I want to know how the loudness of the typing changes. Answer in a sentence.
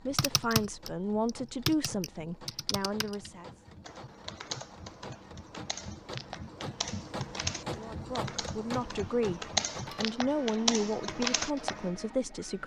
The loudness of the typing goes down, then up.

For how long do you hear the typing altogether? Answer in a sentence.
You can hear the typing for 12 seconds altogether.